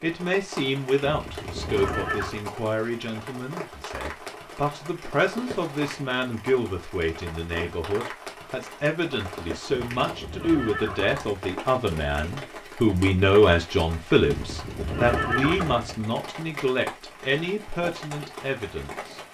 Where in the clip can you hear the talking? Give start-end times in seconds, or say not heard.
0.0-19.2.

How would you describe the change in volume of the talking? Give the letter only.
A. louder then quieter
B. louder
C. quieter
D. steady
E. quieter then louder
A.